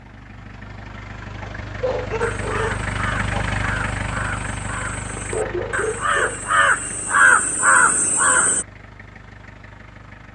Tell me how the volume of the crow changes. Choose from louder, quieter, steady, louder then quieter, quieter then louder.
louder.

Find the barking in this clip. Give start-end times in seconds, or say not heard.
1.4-3.5, 5.3-6.4.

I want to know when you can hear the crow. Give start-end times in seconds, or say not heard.
2.2-8.7.